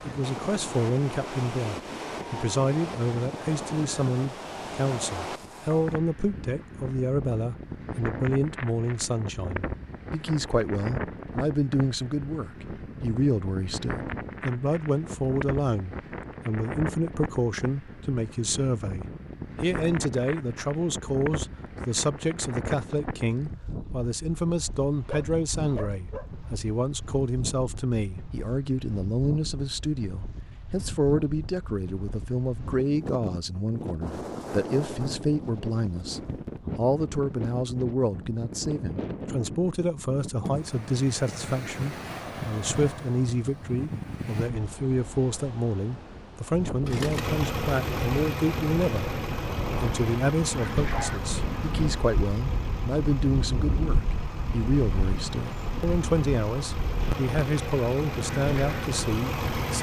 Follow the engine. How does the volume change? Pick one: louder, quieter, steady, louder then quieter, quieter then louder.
quieter then louder.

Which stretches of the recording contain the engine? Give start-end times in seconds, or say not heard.
46.9-59.7.